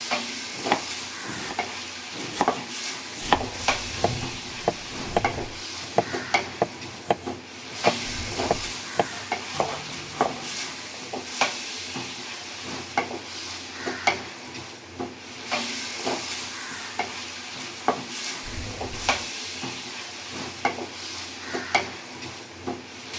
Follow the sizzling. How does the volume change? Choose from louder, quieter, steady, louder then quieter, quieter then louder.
steady.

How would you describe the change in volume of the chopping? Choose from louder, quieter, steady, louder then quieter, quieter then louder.
louder then quieter.